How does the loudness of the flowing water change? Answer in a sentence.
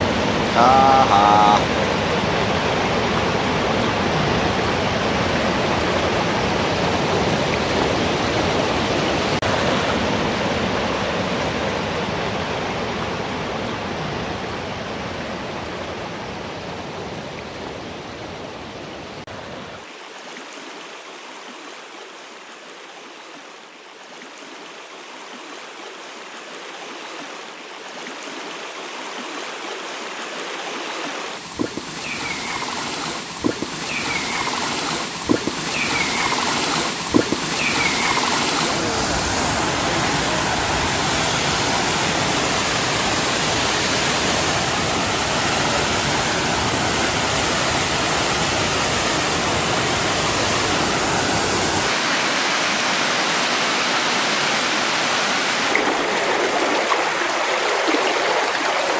The loudness of the flowing water goes down, then up.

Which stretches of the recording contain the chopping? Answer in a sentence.
The chopping can't be heard in this clip.